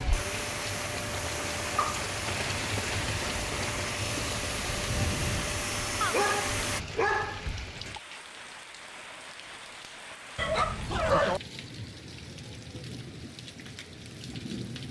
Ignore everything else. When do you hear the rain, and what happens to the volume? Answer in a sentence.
You can hear the rain from 0.0 to 14.8 s, getting quieter.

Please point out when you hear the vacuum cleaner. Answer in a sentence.
You can hear the vacuum cleaner from 0.0 to 6.8 s.